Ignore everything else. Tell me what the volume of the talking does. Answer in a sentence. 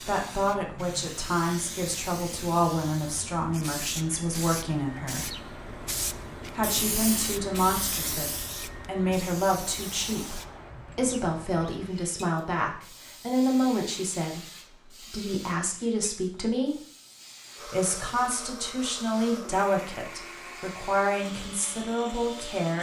The loudness of the talking stays about the same.